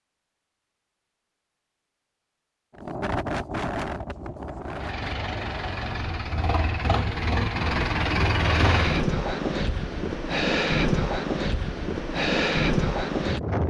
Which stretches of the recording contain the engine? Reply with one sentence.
The engine can be heard from 4.7 to 9.1 s.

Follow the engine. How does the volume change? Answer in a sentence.
The volume of the engine goes up.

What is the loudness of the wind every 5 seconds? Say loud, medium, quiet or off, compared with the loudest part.
medium, medium, loud.